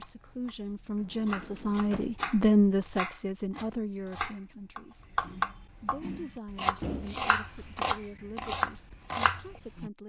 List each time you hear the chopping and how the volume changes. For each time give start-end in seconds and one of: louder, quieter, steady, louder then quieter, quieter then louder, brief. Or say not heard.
0.0-9.9 louder.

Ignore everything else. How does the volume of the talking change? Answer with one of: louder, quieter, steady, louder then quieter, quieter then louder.
louder then quieter.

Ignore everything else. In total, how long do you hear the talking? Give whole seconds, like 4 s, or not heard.
9 s.